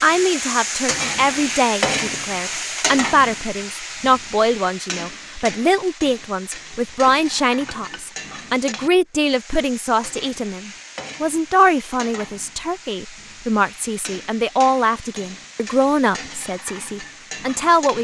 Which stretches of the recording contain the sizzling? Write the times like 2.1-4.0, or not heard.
0.0-18.0.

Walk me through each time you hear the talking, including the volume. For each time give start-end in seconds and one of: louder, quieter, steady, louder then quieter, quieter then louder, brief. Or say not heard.
0.0-18.0 steady.